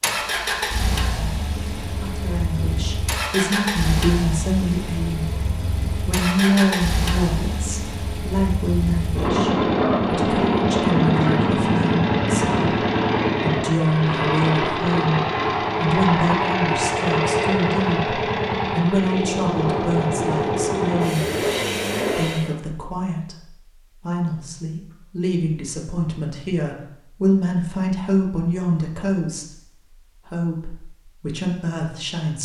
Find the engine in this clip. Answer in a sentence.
You can hear the engine from 0.0 to 22.5 s.